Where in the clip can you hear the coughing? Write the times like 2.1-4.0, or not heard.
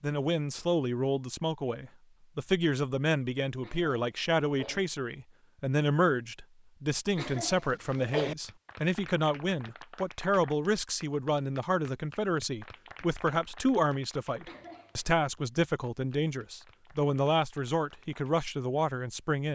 3.6-4.8, 7.2-8.3, 14.4-15.1.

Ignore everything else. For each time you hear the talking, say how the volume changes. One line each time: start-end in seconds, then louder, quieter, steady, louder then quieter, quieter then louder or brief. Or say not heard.
0.0-19.5 steady.